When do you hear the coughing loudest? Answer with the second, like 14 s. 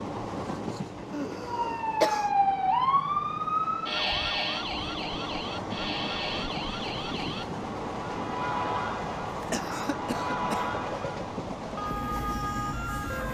2 s.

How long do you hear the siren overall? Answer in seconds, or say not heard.
12 s.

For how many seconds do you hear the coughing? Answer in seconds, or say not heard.
3 s.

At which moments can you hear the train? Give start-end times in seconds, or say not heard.
0.0-13.2.